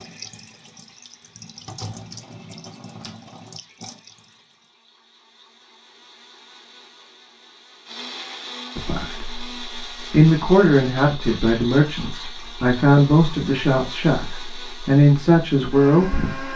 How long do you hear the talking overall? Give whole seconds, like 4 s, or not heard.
8 s.